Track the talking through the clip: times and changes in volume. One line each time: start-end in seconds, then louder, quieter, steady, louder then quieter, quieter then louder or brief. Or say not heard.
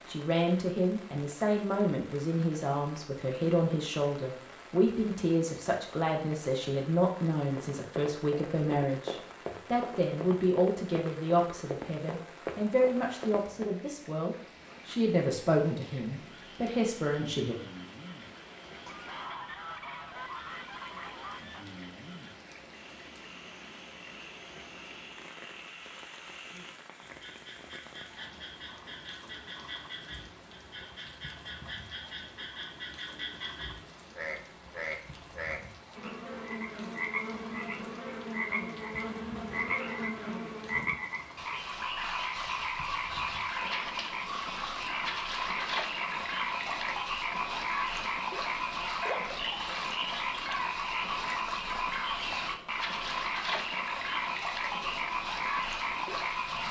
0.1-17.6 steady.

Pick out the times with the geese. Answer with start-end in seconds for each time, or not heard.
18.9-21.6, 39.6-41.1.